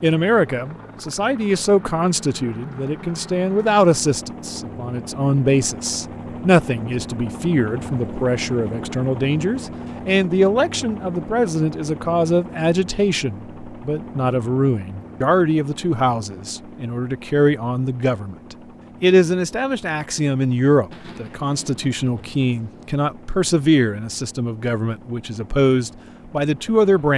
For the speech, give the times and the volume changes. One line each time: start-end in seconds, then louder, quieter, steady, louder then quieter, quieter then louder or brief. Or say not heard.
0.0-27.1 steady.